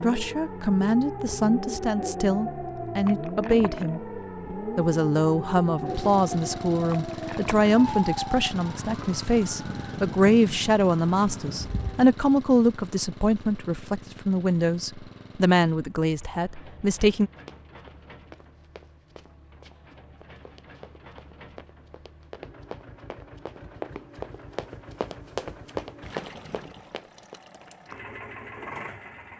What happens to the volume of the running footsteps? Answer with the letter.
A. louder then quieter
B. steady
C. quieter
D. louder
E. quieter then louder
D.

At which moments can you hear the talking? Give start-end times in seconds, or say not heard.
0.0-4.0, 4.8-17.3.